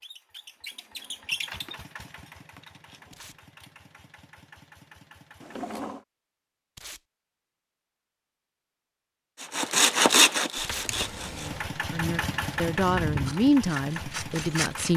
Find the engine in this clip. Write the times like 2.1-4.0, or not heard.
0.0-5.7, 11.4-14.9.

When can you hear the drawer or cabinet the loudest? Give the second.
6 s.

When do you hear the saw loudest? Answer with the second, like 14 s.
10 s.